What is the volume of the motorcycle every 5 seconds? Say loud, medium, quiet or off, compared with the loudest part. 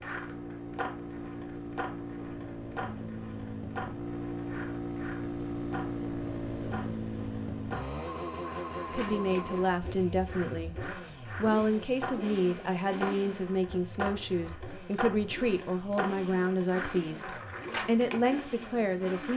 loud, loud, medium, medium.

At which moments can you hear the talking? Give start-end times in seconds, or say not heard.
8.8-19.3.